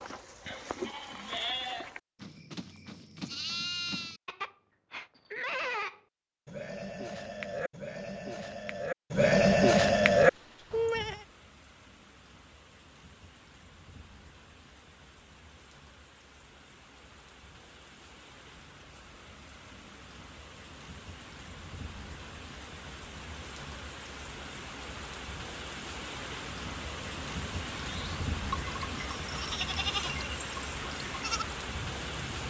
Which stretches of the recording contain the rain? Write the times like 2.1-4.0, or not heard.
10.1-32.4.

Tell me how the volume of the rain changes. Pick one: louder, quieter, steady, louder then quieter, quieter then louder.
louder.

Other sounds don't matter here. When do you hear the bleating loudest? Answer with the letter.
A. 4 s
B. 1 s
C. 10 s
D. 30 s
C.